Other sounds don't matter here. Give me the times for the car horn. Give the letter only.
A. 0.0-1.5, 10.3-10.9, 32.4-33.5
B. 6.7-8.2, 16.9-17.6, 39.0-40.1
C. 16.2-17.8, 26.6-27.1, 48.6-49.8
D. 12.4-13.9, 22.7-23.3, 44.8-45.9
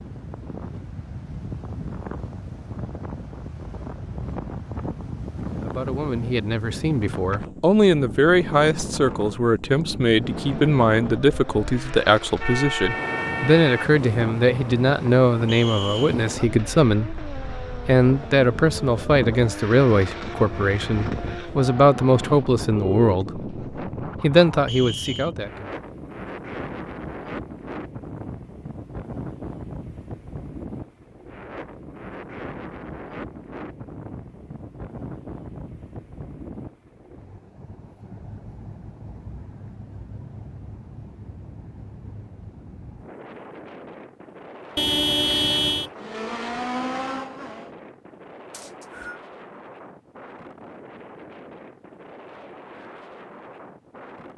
D.